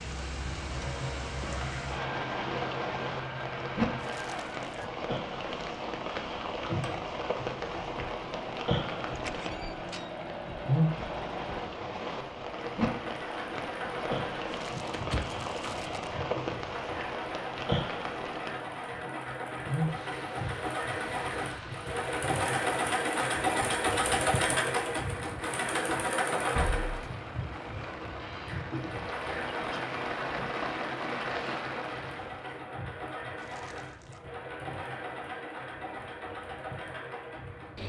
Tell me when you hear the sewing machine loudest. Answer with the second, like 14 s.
24 s.